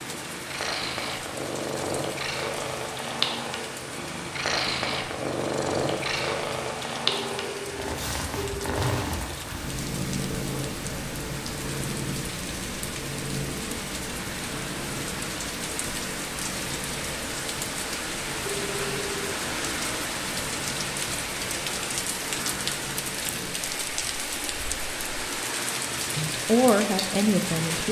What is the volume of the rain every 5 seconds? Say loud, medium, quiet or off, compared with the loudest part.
medium, medium, medium, loud, loud, loud.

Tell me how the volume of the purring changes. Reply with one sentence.
The volume of the purring goes down.